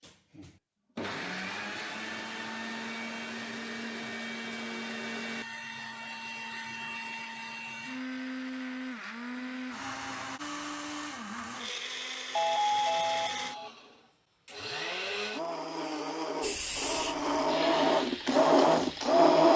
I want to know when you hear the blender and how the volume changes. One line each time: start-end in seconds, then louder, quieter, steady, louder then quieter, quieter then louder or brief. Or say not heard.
0.0-19.5 louder.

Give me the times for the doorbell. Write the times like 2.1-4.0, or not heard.
12.3-13.7.